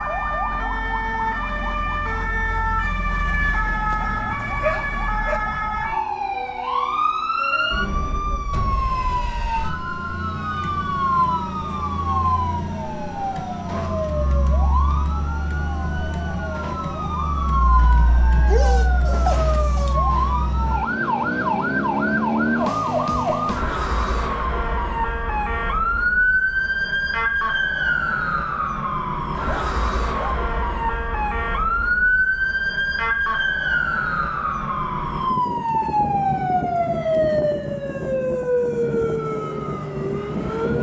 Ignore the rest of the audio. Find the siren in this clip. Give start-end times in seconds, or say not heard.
0.0-40.7.